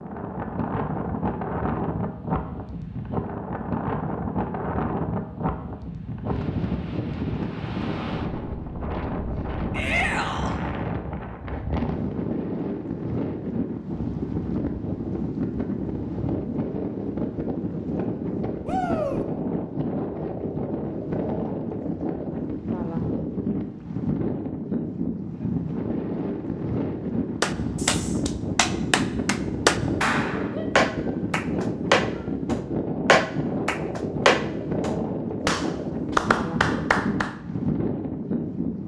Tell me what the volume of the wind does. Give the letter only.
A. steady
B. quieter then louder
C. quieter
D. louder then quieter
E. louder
A.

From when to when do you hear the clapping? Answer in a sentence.
You can hear the clapping from 27.4 to 37.4 s.